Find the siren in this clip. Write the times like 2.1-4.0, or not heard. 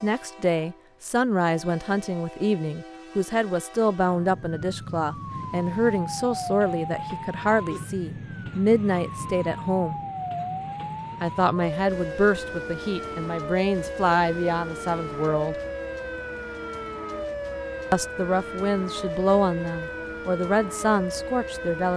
4.0-21.9.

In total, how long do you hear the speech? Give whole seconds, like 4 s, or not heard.
18 s.